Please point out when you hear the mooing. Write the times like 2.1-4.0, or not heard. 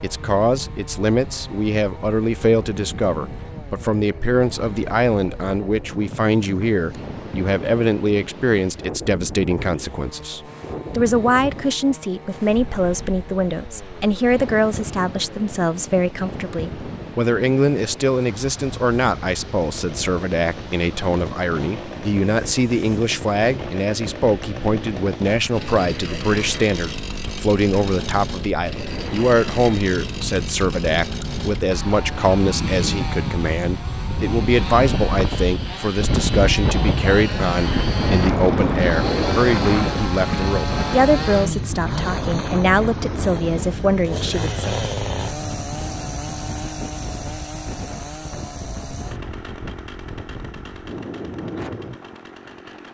not heard.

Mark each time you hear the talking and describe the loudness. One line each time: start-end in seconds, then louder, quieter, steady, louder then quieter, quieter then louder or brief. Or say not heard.
0.0-44.8 steady.